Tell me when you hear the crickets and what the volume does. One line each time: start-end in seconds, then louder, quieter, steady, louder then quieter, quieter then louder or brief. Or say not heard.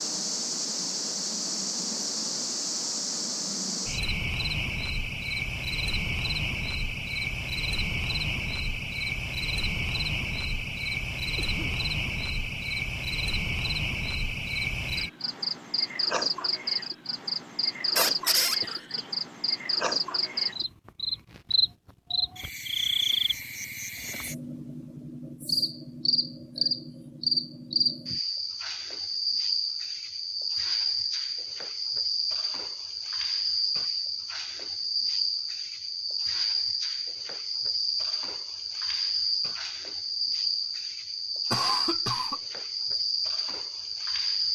0.0-44.5 steady.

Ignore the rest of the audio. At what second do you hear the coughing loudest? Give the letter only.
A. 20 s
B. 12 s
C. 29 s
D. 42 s
D.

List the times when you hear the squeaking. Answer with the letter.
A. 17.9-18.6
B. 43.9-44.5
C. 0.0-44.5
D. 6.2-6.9
A.